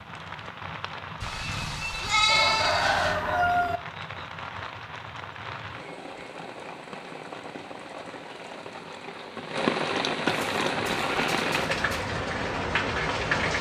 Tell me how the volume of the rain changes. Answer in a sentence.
The loudness of the rain goes up.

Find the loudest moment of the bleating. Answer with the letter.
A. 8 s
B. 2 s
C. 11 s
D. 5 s
B.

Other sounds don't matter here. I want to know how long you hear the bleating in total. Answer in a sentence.
You can hear the bleating for 4 seconds altogether.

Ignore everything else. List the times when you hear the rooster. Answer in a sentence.
The rooster can be heard from 2.2 to 3.8 s.